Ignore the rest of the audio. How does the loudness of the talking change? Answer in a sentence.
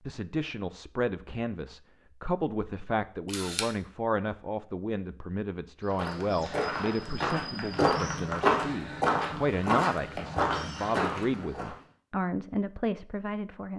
The volume of the talking stays about the same.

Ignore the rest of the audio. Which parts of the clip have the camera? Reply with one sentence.
You can hear the camera from 3.2 to 3.7 s.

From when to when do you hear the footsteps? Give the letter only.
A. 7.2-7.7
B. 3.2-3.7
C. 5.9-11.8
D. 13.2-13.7
C.